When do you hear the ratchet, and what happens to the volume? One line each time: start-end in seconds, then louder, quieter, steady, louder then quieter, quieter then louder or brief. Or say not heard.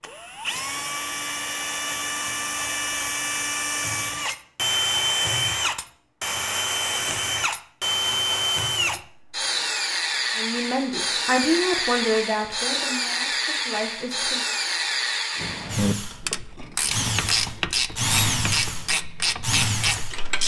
15.3-20.4 steady.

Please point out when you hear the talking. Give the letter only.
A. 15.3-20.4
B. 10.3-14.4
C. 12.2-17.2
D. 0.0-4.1
B.